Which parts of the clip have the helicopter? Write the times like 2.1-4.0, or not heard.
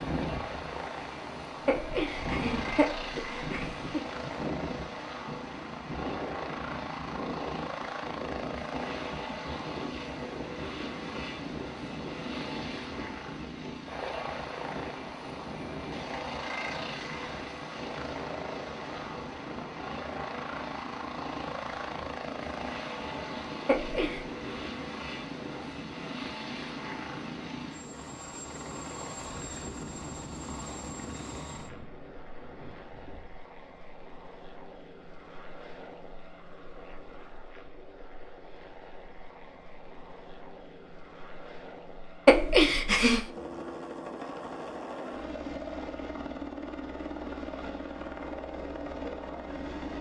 0.0-49.9.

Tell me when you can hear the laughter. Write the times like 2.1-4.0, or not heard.
1.6-3.9, 23.6-24.2, 42.2-43.2.